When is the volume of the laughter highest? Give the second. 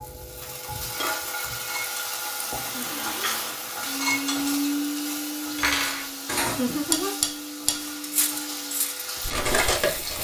7 s.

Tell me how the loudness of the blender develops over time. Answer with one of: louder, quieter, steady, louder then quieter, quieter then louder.
louder then quieter.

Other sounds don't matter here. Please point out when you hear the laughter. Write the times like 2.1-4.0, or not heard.
2.6-3.3, 6.5-7.1.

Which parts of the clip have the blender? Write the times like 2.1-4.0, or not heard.
2.6-8.9.